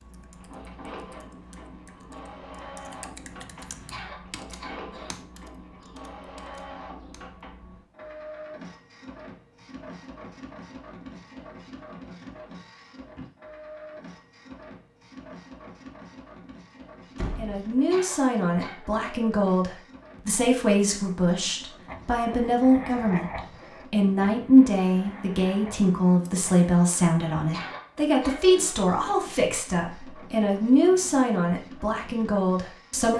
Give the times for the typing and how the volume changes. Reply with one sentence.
The typing can be heard from 0.0 to 7.2 s, getting louder then quieter.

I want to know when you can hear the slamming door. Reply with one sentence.
The slamming door can be heard from 17.1 to 17.6 s.